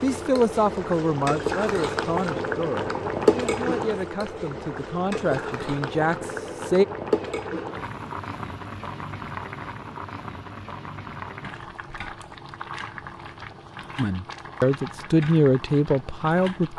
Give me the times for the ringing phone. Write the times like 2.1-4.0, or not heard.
not heard.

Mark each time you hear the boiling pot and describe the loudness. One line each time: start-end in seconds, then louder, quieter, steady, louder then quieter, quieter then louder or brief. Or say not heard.
0.0-16.7 quieter.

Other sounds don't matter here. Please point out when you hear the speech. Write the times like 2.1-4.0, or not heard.
0.0-6.8, 13.9-16.7.